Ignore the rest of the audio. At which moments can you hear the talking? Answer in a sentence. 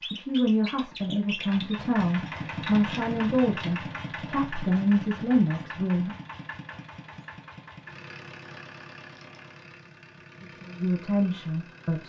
The talking can be heard from 0.1 to 6.1 s and from 10.5 to 12.0 s.